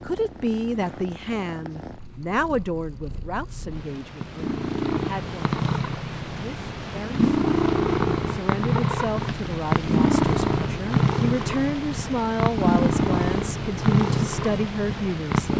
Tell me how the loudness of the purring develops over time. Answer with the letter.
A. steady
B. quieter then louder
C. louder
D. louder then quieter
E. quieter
C.